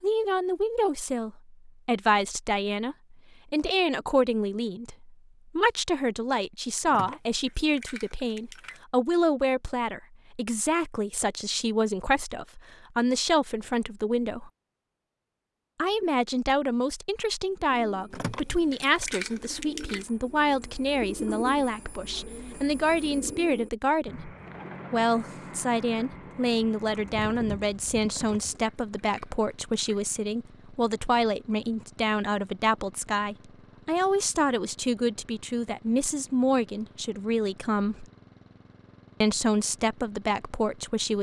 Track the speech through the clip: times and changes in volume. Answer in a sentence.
The speech can be heard from 0.0 to 14.5 s, at a steady volume; from 15.8 to 38.0 s, at a steady volume; and briefly from 39.2 to 41.1 s.